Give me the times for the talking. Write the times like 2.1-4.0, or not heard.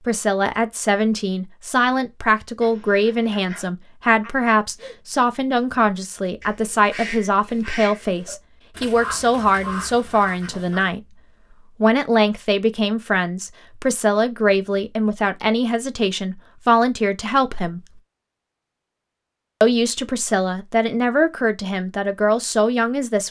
0.0-11.0, 11.8-18.0, 19.6-23.2.